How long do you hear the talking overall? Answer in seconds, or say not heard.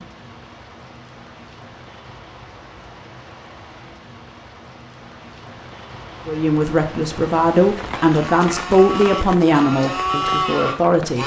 5 s.